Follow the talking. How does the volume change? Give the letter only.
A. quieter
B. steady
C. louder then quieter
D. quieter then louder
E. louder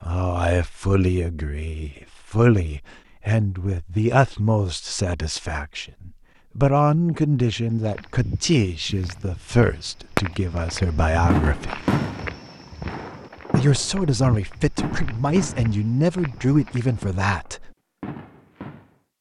B.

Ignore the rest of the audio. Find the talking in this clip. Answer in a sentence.
The talking can be heard from 0.0 to 11.8 s and from 13.6 to 17.7 s.